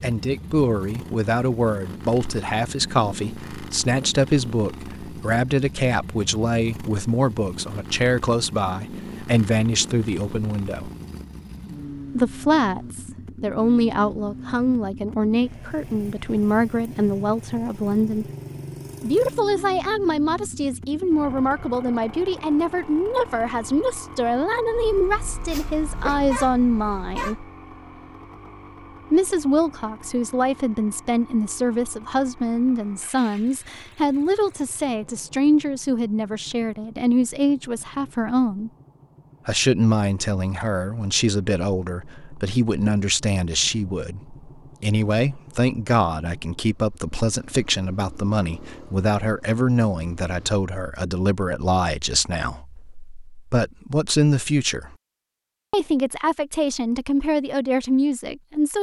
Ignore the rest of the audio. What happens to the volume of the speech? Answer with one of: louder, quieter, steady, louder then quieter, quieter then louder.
steady.